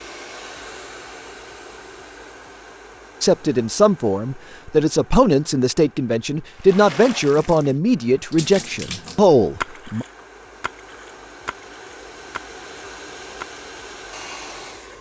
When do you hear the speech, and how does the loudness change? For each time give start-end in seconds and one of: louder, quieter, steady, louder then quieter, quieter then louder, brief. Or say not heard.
3.2-10.1 steady.